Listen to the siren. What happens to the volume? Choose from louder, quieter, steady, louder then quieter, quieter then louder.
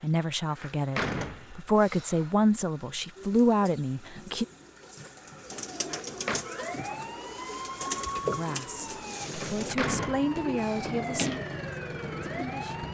steady.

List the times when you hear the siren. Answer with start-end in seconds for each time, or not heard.
6.4-12.8.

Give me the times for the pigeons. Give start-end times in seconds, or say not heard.
3.1-12.4.